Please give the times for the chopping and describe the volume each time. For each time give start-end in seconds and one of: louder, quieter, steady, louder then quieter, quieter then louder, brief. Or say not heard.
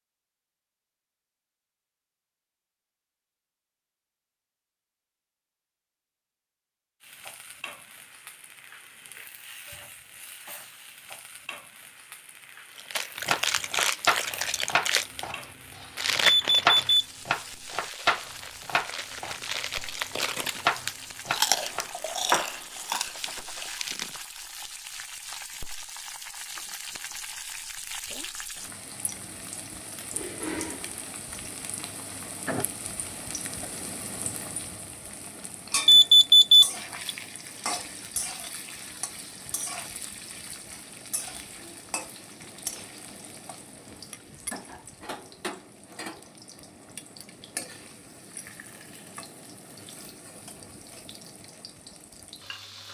13.2-23.6 steady.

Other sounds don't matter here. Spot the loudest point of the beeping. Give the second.
36 s.